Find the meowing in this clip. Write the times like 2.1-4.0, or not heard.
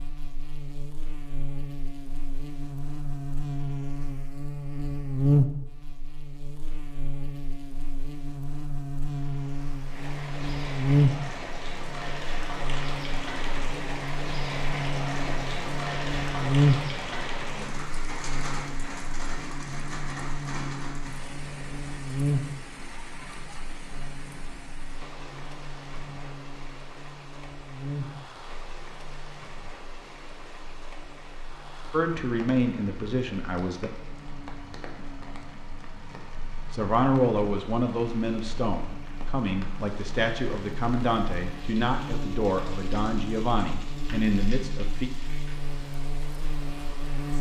not heard.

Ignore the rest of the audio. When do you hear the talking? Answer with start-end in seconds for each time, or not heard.
31.9-33.9, 36.7-45.1.